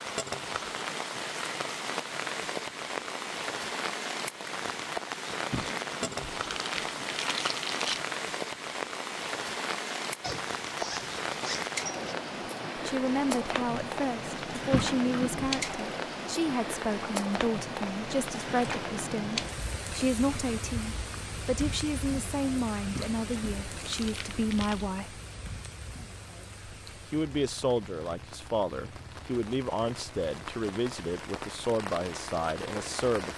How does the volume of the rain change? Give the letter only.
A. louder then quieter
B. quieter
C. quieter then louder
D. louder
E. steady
B.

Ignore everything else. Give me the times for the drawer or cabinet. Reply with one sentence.
The drawer or cabinet can't be heard in this clip.